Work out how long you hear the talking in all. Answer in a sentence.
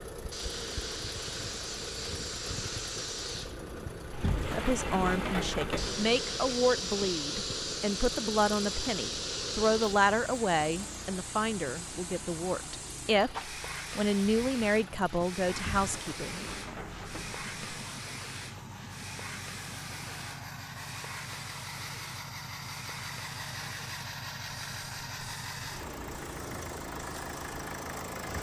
The talking can be heard for 12 seconds in total.